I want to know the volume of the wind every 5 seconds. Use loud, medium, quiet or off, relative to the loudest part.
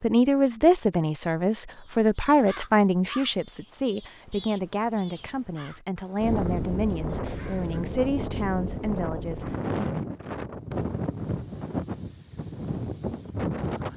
off, loud, loud.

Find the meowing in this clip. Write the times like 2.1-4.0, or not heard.
not heard.